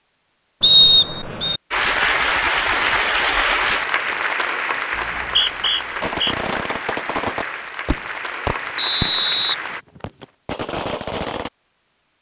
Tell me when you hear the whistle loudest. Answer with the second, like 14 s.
1 s.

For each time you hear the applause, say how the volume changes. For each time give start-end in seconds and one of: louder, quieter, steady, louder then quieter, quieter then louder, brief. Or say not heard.
1.7-9.8 quieter.